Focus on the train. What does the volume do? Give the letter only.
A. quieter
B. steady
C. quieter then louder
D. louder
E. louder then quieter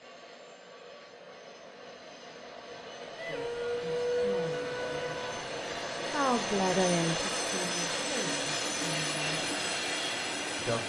D.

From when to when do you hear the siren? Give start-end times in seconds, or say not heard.
3.1-5.4.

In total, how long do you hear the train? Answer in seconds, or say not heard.
11 s.